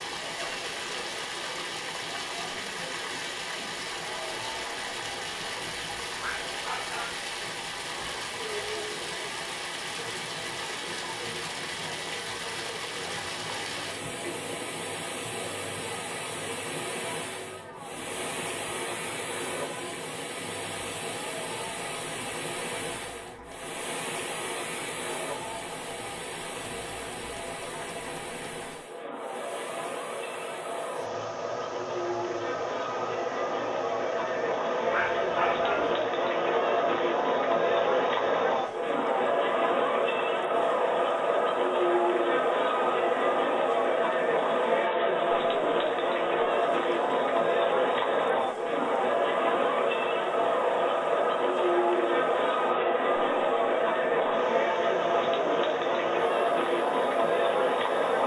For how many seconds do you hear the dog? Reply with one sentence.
You can hear the dog for 2 seconds altogether.